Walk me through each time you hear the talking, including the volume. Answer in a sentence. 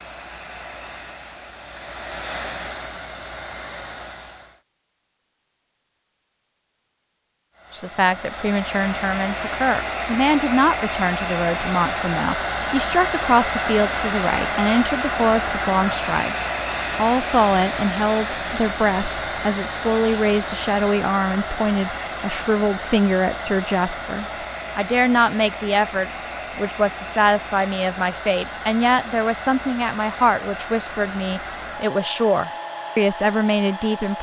You can hear the talking from 7.7 to 34.1 s, at a steady volume.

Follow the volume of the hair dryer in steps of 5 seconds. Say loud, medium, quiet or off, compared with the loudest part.
medium, medium, loud, loud, medium, medium, medium.